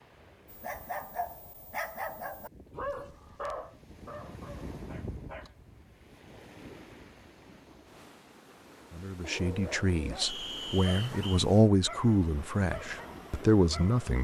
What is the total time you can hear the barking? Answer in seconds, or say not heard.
10 s.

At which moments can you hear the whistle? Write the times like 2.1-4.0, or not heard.
10.2-11.4.